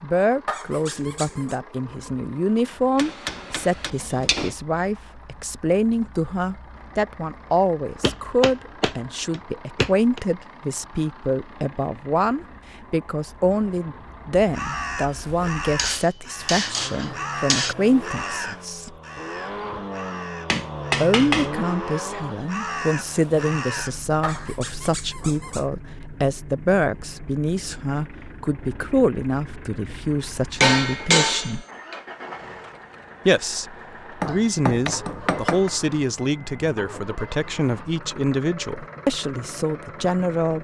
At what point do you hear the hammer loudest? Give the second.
31 s.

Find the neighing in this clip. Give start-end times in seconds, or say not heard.
not heard.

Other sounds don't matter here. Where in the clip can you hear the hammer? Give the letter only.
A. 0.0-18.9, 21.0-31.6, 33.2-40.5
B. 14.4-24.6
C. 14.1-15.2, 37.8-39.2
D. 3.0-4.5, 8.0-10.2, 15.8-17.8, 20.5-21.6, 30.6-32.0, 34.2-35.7
D.